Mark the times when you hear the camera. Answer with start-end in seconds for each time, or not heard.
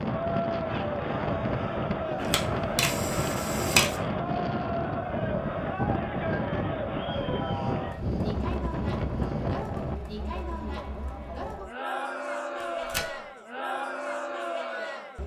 2.1-4.0, 12.6-13.2.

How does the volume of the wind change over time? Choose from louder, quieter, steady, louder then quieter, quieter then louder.
steady.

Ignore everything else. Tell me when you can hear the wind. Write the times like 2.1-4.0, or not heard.
0.0-10.0.